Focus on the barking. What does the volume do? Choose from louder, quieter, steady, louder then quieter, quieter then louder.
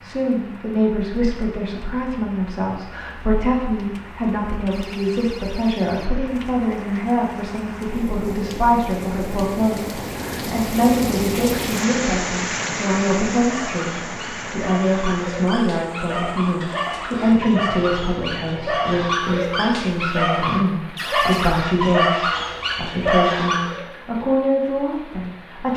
louder.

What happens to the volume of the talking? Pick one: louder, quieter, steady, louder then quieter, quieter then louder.
steady.